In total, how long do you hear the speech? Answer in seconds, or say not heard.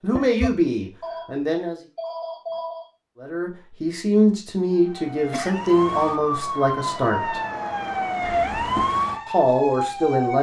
7 s.